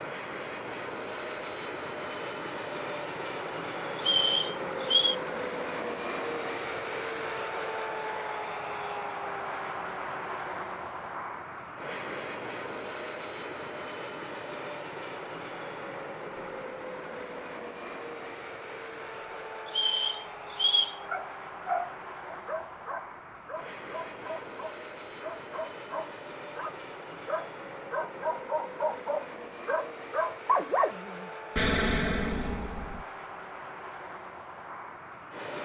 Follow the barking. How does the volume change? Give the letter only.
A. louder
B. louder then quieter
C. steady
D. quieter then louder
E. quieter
D.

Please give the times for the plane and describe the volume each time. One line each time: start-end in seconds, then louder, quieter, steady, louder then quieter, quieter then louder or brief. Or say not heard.
0.0-35.5 quieter.